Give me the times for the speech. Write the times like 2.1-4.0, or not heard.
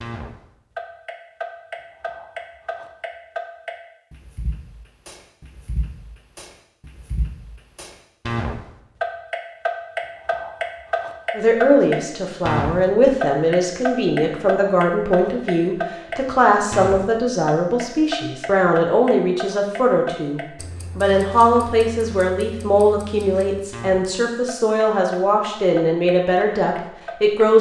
11.3-27.5.